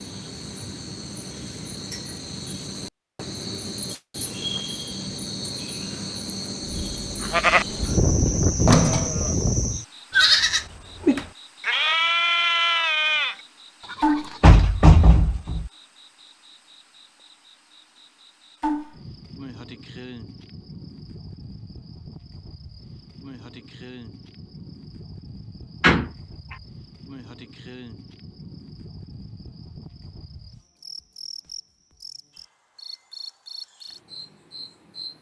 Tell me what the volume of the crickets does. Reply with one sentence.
The volume of the crickets goes down.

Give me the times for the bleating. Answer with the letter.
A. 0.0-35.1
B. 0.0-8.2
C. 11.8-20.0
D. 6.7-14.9
D.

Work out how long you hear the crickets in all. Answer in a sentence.
You can hear the crickets for 35 seconds altogether.